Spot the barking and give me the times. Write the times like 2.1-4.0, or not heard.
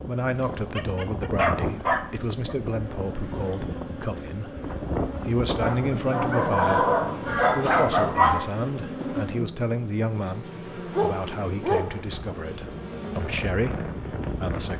0.8-2.5, 5.6-8.2, 10.9-12.0.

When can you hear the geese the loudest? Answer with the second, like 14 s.
8 s.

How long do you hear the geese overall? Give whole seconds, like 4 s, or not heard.
2 s.